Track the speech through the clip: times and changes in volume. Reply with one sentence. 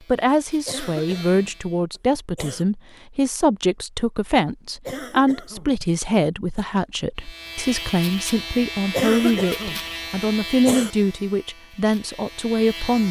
The speech can be heard from 0.1 to 13.0 s, at a steady volume.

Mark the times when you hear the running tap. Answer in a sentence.
You can't hear the running tap here.